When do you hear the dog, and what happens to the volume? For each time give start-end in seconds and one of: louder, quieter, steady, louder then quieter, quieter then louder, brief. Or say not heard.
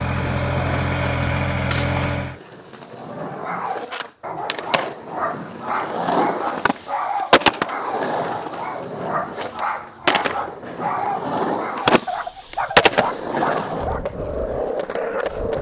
3.0-14.1 steady.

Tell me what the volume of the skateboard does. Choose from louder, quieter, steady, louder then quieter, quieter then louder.
louder.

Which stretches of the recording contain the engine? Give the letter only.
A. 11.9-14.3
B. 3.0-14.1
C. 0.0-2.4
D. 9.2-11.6
C.